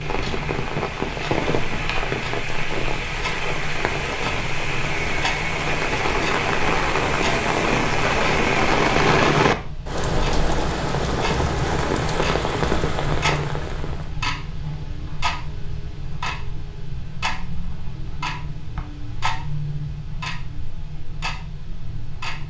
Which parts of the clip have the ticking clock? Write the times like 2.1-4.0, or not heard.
0.0-22.4.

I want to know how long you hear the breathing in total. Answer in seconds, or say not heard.
not heard.